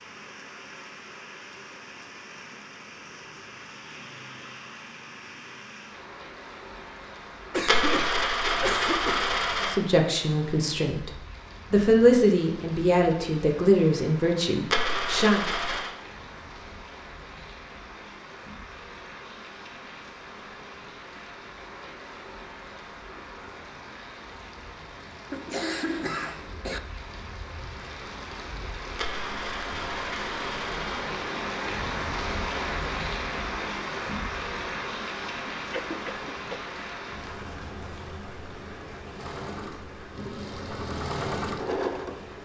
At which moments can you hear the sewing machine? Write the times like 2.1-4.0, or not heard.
39.1-42.4.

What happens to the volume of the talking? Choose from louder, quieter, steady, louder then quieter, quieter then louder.
louder then quieter.